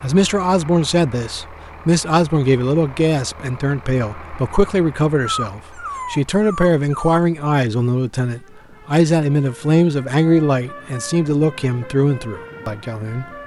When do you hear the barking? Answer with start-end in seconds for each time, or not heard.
5.2-7.2.